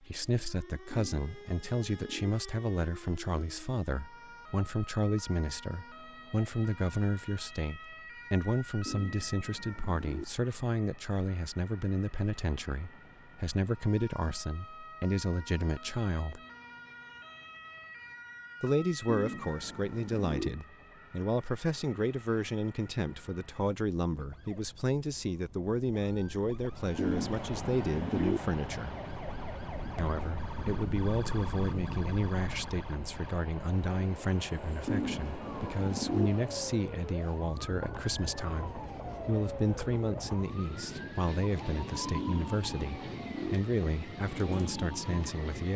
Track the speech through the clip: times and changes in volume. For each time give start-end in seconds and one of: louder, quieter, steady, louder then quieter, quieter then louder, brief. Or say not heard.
0.0-16.4 steady
18.6-28.9 steady
29.9-45.7 steady.